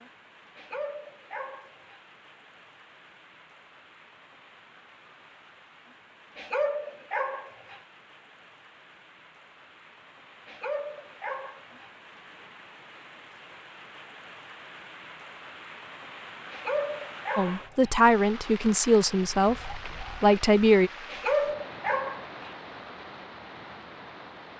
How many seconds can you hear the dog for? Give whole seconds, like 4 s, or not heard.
7 s.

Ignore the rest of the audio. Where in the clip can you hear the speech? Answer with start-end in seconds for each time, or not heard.
17.4-20.9.